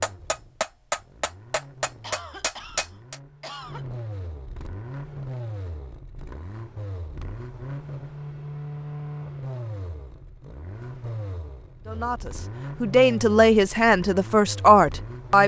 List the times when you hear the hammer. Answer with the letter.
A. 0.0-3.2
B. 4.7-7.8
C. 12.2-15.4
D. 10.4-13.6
A.